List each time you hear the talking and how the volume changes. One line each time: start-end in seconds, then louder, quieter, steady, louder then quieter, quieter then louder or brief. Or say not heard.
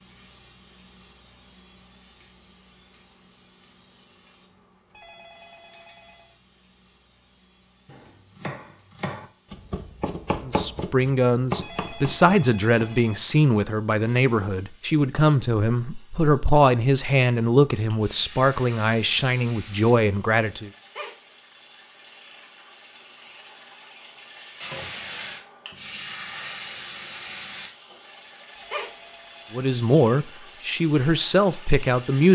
10.4-20.7 steady
29.5-32.2 brief.